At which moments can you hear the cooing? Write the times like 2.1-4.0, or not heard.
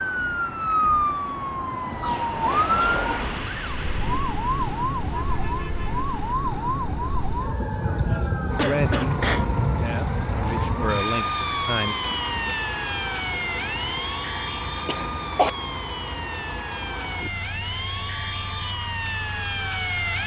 not heard.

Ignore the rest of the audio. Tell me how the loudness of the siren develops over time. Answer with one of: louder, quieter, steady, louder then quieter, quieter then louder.
quieter.